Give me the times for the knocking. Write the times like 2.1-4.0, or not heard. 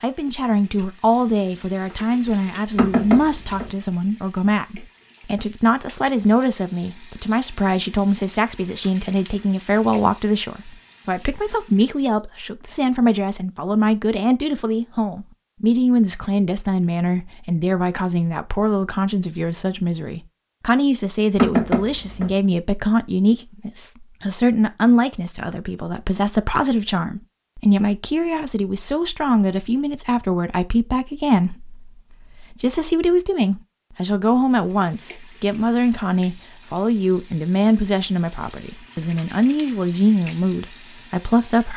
2.8-3.8, 21.4-22.4.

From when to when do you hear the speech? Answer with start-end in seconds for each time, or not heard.
0.0-41.7.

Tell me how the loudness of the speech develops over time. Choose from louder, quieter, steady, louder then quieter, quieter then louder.
steady.